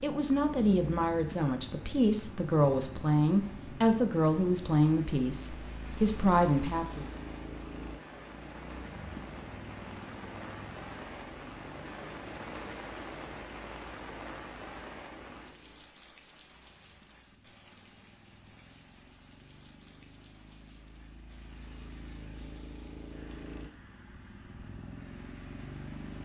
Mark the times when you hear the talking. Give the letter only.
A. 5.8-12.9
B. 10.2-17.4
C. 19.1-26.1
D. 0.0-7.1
D.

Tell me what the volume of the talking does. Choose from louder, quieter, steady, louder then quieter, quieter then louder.
steady.